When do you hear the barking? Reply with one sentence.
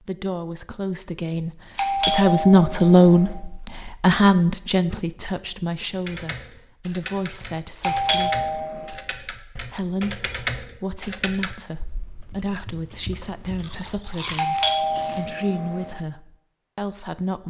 You can't hear the barking here.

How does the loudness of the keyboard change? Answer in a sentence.
The loudness of the keyboard goes up, then down.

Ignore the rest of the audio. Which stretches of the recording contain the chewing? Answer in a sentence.
You can hear the chewing from 13.6 to 15.2 s.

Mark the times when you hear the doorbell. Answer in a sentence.
You can hear the doorbell from 1.8 to 3.4 s, from 7.8 to 8.9 s and from 14.3 to 15.9 s.